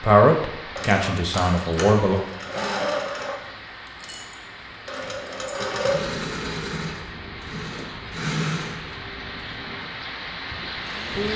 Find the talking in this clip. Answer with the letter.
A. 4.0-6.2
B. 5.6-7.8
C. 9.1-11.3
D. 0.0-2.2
D.